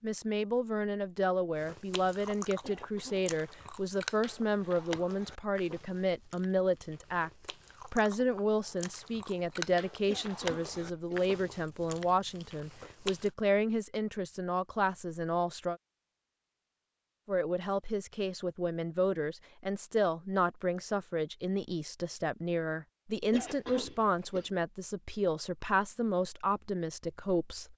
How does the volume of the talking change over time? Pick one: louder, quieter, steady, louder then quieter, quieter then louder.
steady.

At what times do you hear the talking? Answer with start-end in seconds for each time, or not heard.
0.0-15.8, 17.2-27.7.